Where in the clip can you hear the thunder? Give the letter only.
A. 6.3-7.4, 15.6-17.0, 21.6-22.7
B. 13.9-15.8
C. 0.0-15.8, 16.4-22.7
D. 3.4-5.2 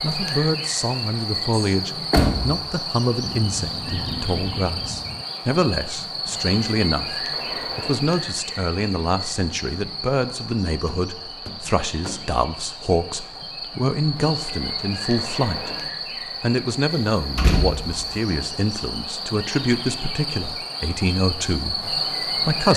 D.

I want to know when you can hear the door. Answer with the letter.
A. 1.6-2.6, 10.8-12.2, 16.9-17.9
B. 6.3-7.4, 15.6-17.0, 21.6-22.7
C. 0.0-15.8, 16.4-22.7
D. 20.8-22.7
A.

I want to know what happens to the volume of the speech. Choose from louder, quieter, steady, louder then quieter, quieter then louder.
steady.